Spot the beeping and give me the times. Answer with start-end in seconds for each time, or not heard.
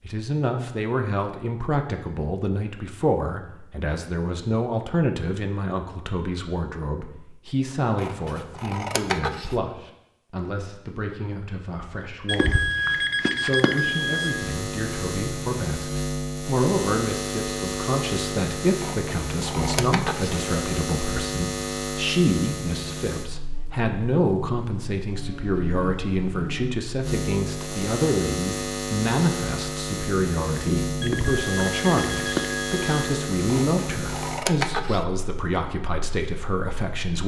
12.2-14.3, 31.0-33.0.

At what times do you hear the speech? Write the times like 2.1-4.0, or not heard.
0.0-37.2.